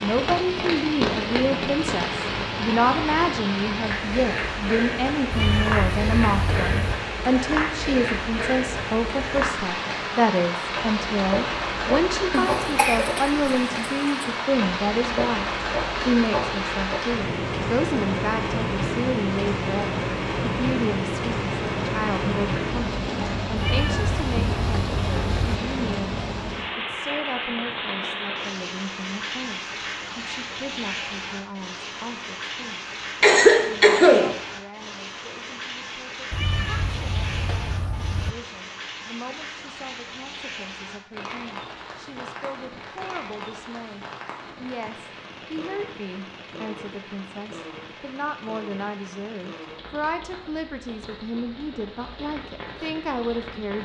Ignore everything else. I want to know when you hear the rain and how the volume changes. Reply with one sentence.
The rain can be heard from 0.0 to 53.8 s, getting quieter.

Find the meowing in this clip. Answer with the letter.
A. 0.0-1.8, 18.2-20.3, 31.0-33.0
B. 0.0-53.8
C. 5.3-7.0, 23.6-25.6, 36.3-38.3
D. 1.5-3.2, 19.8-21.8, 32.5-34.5
C.